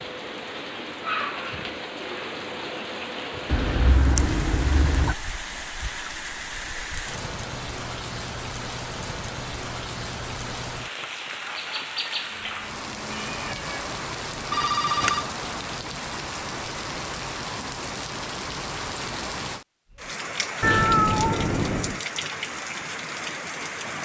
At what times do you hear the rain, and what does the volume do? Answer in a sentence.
The rain can be heard from 0.0 to 23.9 s, at a steady volume.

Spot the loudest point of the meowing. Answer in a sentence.
The volume of the meowing peaks at 21 seconds.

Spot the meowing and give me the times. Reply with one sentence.
The meowing can be heard from 3.5 to 5.2 s, from 12.3 to 13.8 s and from 20.6 to 22.0 s.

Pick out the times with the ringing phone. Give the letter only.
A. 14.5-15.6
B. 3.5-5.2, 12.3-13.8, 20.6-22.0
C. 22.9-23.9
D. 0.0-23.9
A.